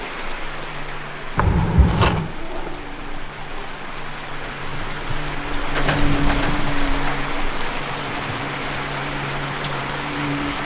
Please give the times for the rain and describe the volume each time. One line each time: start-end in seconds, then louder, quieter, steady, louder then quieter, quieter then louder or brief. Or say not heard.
0.0-10.6 louder.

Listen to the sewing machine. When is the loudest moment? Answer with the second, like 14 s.
6 s.